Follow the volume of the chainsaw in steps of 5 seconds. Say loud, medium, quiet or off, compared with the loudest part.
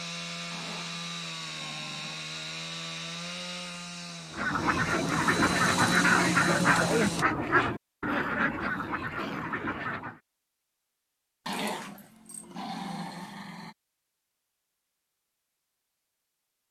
medium, loud, off, off.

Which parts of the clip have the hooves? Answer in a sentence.
You can't hear the hooves here.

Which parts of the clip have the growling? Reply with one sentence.
You can hear the growling from 0.5 to 2.2 s, from 8.1 to 9.6 s and from 11.4 to 13.8 s.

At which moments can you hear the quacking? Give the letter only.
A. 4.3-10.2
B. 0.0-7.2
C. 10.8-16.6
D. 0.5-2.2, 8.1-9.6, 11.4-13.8
A.